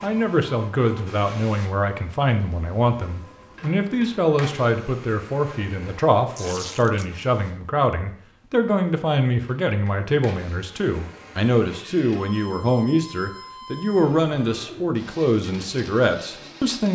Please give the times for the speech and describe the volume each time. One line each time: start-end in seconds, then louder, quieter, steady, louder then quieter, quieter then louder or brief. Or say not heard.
0.0-16.9 steady.